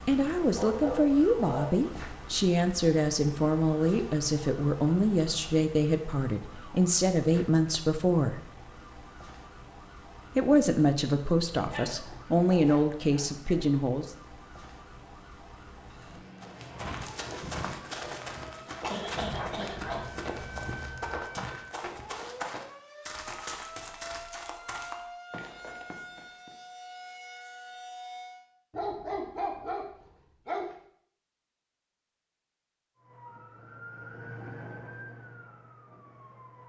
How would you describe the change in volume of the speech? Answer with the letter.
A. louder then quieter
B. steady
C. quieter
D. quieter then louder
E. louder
B.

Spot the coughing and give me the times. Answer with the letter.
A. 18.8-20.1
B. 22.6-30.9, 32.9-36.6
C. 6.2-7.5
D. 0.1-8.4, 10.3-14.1
A.